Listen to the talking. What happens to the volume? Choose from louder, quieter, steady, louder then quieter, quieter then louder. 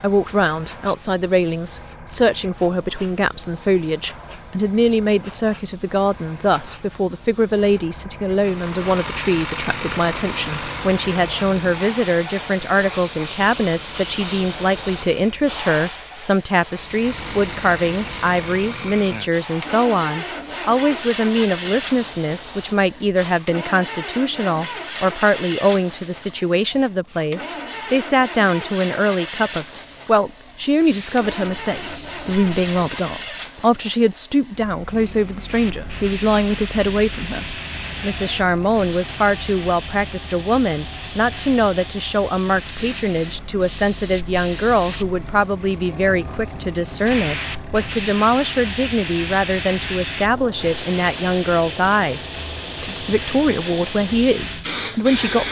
steady.